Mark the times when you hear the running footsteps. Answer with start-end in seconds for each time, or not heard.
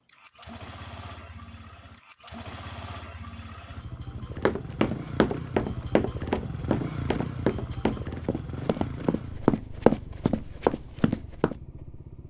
4.5-11.6.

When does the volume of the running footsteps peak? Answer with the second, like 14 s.
10 s.